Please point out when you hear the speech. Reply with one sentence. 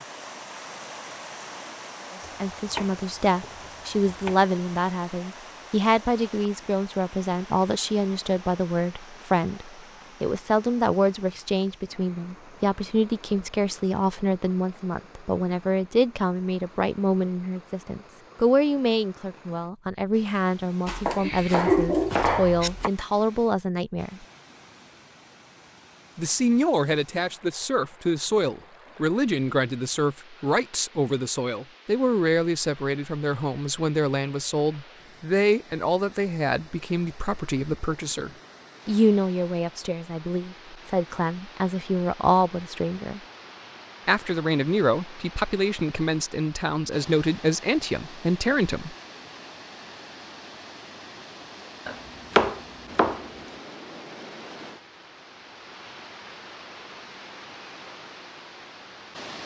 You can hear the speech from 2.4 to 24.2 s, from 26.1 to 43.2 s and from 44.0 to 49.0 s.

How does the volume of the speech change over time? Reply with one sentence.
The volume of the speech stays about the same.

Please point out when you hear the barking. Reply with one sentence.
You can hear the barking from 21.1 to 22.7 s.